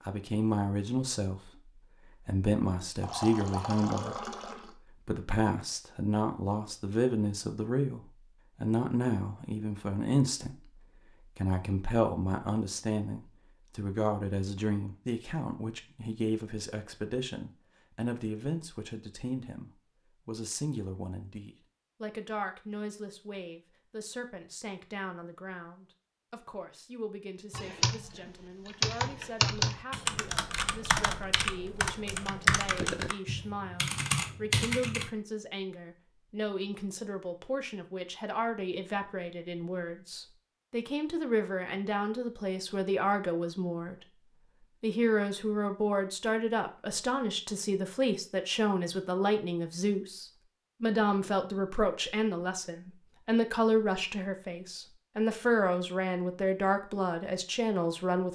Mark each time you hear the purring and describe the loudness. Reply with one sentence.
The purring can't be heard in this clip.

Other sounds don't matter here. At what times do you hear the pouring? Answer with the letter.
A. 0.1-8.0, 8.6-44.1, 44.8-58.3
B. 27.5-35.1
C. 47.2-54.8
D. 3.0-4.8
D.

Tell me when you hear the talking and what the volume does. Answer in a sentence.
You can hear the talking from 0.1 to 8.0 s, at a steady volume; from 8.6 to 44.1 s, getting quieter then louder; and from 44.8 to 58.3 s, at a steady volume.